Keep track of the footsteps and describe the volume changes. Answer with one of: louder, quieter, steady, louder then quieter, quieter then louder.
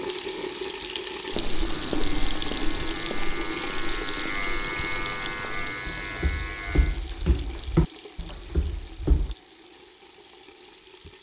quieter then louder.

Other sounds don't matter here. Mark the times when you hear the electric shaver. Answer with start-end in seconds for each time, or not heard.
1.6-7.0.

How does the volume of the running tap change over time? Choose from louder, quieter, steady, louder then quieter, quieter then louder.
quieter.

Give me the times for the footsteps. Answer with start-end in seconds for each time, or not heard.
1.3-9.3.